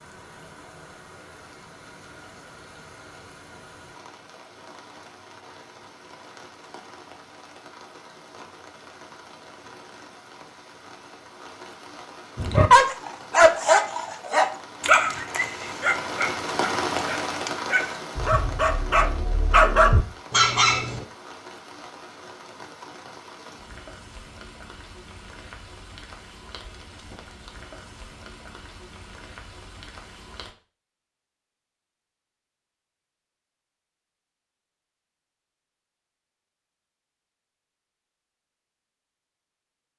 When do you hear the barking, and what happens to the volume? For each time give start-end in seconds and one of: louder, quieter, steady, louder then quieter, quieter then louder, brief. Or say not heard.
12.3-21.1 quieter then louder.